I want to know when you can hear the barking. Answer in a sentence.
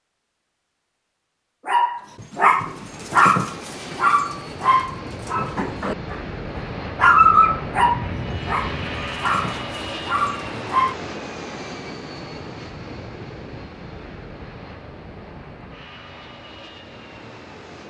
The barking can be heard from 1.6 to 6.2 s and from 7.0 to 10.9 s.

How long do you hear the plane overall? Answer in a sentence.
The plane can be heard for 15 seconds in total.